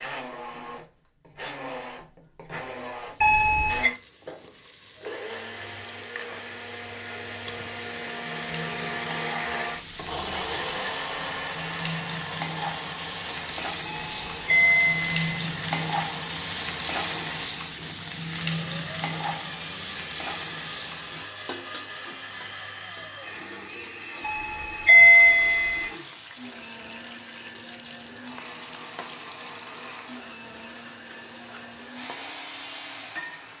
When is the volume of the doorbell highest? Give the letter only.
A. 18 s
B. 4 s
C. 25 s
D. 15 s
C.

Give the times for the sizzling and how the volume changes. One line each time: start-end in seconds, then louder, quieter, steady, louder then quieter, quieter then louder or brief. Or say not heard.
3.0-33.5 louder then quieter.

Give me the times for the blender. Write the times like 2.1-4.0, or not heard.
0.0-33.5.